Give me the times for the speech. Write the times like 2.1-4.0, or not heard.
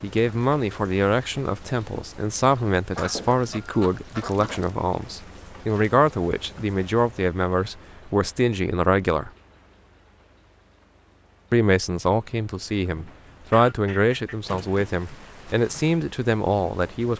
0.0-9.3, 11.5-17.1.